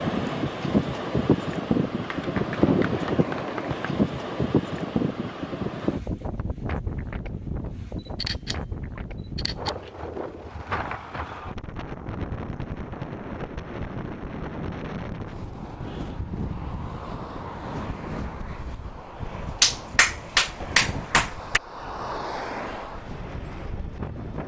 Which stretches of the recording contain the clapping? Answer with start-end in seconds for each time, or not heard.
2.1-3.8, 19.6-21.6.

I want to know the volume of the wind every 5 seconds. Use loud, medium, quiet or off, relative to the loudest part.
loud, medium, medium, medium, medium.